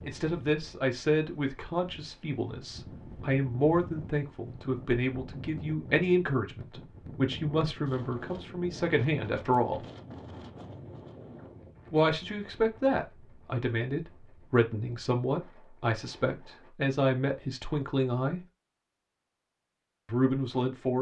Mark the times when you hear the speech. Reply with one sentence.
The speech can be heard from 0.0 to 9.8 s, from 11.9 to 18.4 s and from 20.1 to 20.9 s.